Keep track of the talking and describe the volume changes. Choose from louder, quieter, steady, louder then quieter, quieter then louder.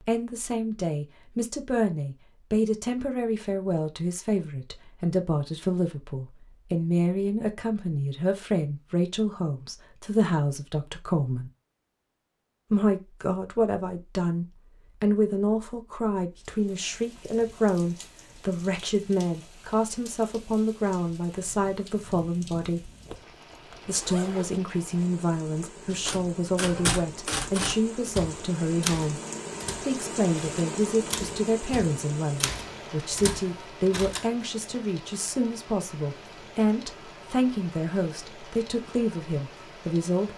steady.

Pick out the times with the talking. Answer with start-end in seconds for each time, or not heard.
0.0-11.5, 12.7-22.9, 23.9-29.2, 29.8-40.3.